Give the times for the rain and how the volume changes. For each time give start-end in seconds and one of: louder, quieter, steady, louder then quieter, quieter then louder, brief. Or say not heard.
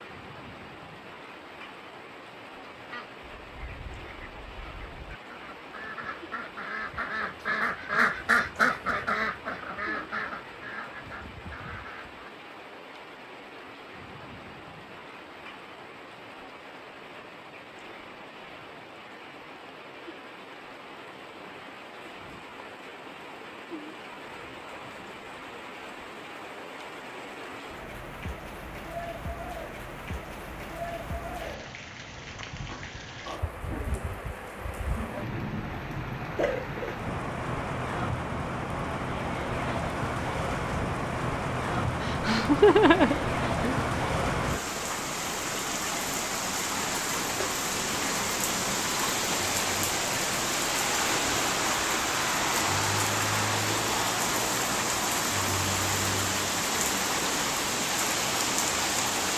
0.0-59.3 louder.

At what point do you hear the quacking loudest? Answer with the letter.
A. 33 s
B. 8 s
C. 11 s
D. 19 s
B.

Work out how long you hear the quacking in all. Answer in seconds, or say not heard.
10 s.